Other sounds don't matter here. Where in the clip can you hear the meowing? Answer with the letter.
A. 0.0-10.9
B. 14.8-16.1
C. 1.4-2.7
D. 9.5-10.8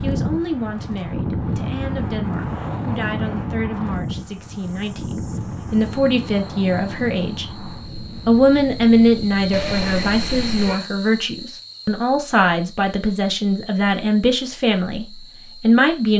D.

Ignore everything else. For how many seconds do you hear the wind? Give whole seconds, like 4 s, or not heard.
11 s.